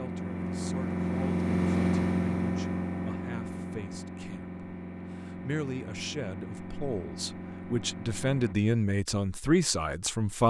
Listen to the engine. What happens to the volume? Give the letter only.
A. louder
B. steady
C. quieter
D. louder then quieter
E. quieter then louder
C.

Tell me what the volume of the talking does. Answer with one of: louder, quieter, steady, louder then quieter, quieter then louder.
louder.